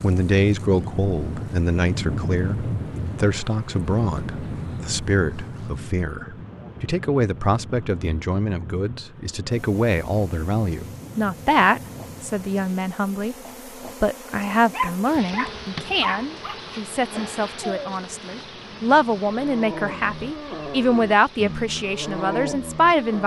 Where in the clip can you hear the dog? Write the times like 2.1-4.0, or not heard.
14.7-23.2.